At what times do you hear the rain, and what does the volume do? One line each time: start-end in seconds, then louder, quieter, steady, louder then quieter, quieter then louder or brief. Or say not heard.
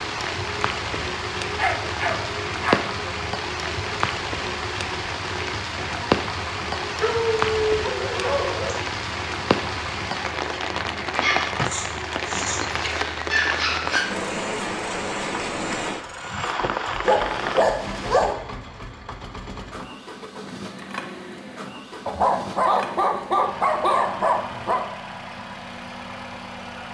0.0-17.8 steady.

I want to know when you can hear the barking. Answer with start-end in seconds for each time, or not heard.
1.6-2.9, 7.0-8.8, 11.2-14.1, 17.0-18.4, 22.1-24.9.